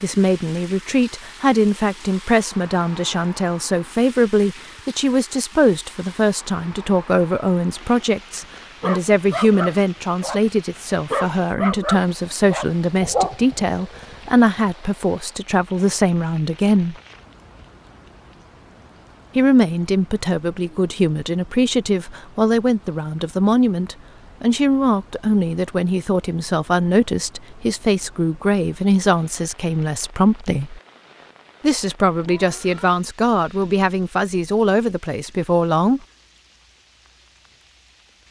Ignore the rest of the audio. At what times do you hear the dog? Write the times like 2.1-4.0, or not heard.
8.8-10.4, 11.1-14.7.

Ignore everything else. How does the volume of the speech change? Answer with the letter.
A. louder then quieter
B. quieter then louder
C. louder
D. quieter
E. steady
E.